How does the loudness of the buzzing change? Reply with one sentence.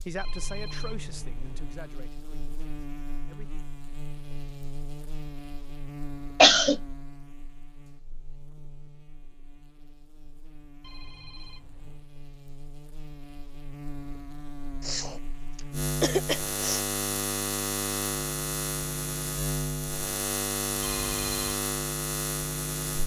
The volume of the buzzing goes down, then up.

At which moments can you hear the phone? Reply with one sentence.
The phone can be heard from 0.1 to 1.8 s, from 10.8 to 12.1 s and from 20.8 to 21.6 s.